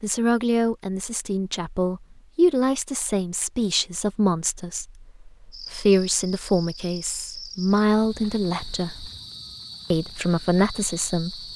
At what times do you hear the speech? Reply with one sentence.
You can hear the speech from 0.0 to 9.1 s and from 9.9 to 11.4 s.